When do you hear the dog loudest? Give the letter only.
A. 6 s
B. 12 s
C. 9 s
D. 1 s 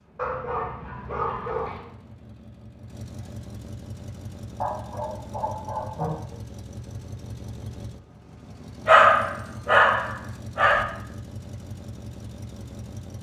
C.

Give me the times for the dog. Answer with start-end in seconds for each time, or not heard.
0.1-1.8, 4.6-6.0, 8.8-10.8.